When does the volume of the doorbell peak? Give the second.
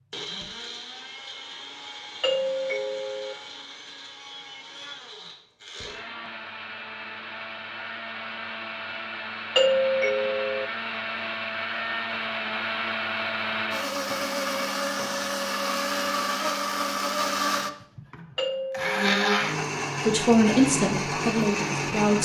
10 s.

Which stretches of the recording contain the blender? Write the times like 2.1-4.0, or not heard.
0.0-22.2.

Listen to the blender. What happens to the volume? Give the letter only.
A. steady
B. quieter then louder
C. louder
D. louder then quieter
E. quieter
C.